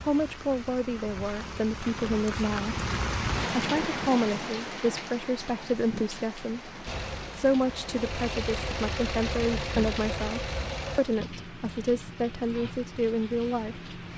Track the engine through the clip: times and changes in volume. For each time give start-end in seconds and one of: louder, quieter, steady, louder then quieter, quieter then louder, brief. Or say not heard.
6.8-11.0 louder.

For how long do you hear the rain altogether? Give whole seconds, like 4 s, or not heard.
14 s.